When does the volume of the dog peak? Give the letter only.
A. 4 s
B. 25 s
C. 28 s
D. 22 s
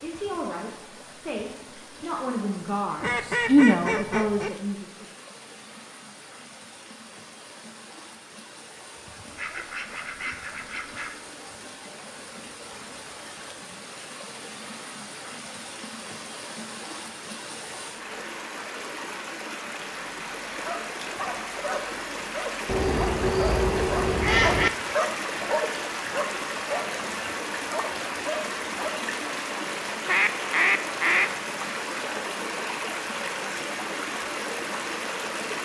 B.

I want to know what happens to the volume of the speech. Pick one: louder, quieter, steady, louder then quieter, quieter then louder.
louder then quieter.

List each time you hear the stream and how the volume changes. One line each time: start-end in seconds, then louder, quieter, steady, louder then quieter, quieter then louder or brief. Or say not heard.
0.0-35.5 louder.